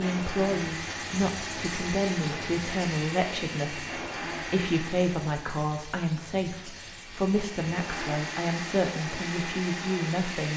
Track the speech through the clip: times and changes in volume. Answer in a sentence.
The speech can be heard from 0.0 to 10.5 s, at a steady volume.